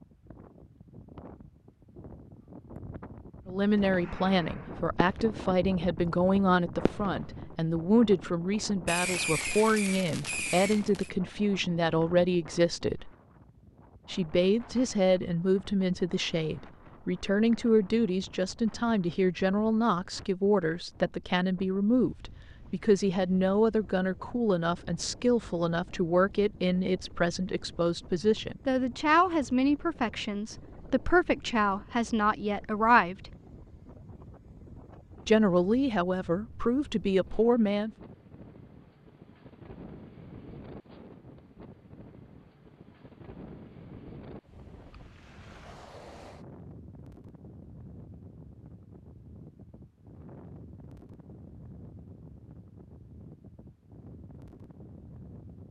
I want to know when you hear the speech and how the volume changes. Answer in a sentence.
You can hear the speech from 3.5 to 13.1 s, at a steady volume; from 14.1 to 33.3 s, at a steady volume; and briefly from 35.2 to 37.9 s.